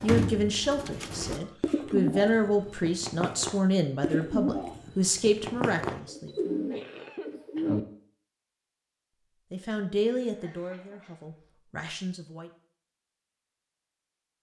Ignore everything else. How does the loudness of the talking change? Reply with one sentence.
The loudness of the talking goes down.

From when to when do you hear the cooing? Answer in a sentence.
You can hear the cooing from 0.0 to 7.8 s.